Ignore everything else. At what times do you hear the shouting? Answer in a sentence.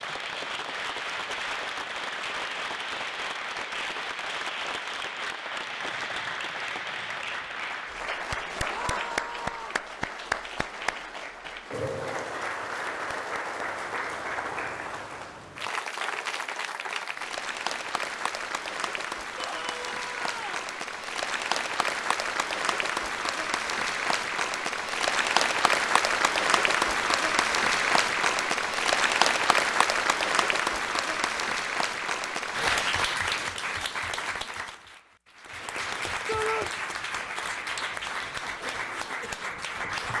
You can hear the shouting from 8.7 to 9.8 s, from 19.4 to 20.6 s and from 36.2 to 36.7 s.